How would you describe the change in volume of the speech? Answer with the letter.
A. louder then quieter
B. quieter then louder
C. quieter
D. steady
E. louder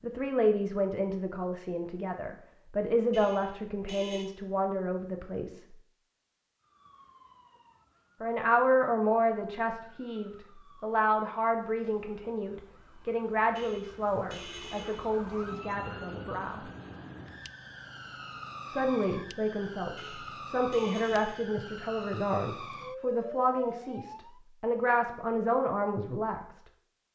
D.